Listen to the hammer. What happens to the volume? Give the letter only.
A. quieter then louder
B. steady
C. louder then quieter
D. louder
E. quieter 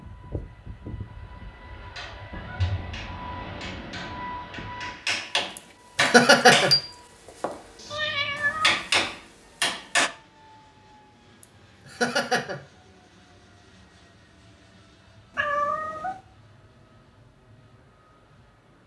D.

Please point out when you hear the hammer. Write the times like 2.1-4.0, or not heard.
1.8-10.1.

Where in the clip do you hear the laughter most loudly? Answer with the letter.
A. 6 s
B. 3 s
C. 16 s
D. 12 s
A.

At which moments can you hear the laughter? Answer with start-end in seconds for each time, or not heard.
5.5-6.8, 11.4-12.6.